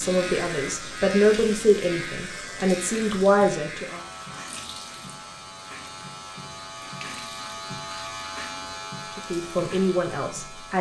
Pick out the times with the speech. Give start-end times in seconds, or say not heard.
0.0-4.0, 9.2-10.7.